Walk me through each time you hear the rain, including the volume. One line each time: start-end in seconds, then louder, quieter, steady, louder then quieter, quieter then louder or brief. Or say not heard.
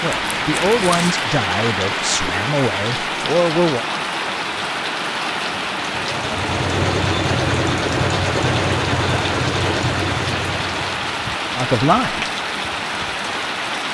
0.0-13.8 steady.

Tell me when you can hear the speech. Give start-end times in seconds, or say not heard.
0.0-3.9, 11.6-12.2.